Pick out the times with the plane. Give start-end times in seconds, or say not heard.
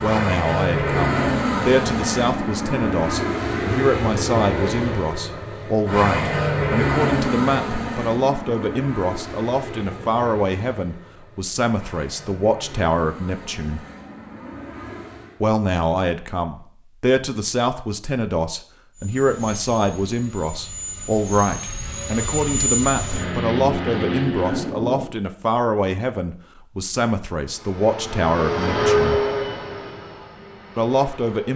0.0-15.4, 18.9-24.8, 27.3-31.5.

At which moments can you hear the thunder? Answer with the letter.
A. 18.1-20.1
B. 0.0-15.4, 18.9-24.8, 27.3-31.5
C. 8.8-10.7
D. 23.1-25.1
D.